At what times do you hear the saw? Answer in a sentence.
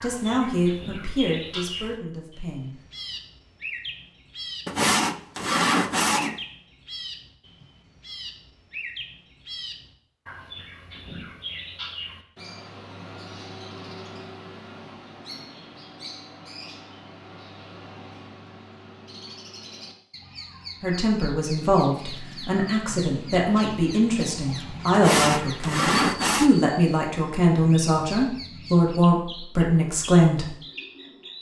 The saw can be heard from 4.7 to 6.4 s and from 24.9 to 26.6 s.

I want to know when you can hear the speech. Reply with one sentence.
You can hear the speech from 0.0 to 2.7 s and from 20.8 to 30.6 s.